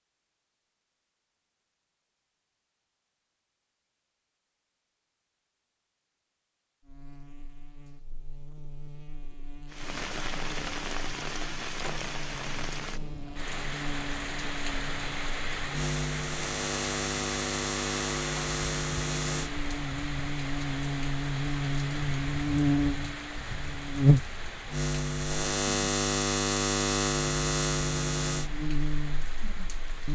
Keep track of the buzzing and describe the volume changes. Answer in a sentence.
The loudness of the buzzing goes up.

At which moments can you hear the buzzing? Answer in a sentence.
The buzzing can be heard from 6.8 to 30.1 s.